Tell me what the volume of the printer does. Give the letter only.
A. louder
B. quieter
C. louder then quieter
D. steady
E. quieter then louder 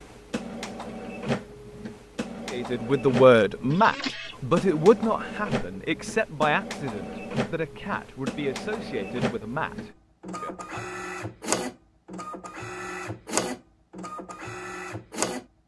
D.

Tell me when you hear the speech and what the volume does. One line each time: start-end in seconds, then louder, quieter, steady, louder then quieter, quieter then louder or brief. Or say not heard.
2.5-10.8 quieter.